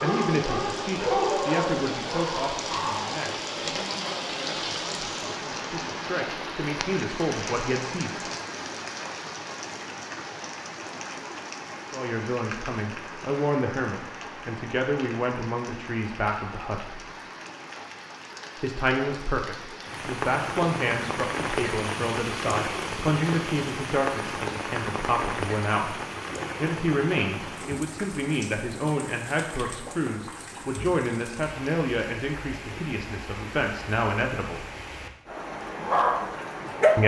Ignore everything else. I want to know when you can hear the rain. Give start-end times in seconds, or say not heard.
0.0-37.0.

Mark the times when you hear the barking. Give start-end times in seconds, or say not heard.
0.0-3.4, 35.3-37.0.